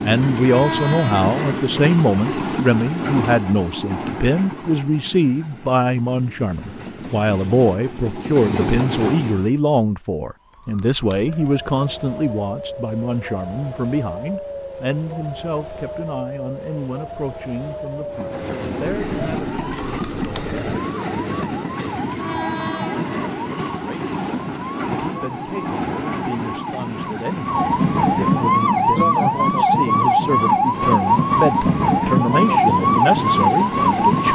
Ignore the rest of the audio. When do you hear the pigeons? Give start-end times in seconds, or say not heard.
not heard.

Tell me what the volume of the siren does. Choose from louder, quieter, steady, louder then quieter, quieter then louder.
louder.